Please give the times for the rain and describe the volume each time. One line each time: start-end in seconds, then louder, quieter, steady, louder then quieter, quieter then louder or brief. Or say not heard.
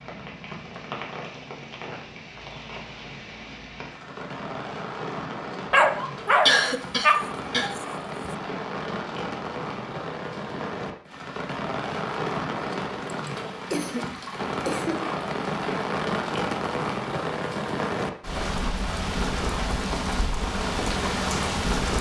0.0-21.9 louder.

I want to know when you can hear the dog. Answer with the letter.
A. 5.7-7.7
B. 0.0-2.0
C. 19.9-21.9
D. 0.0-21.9
A.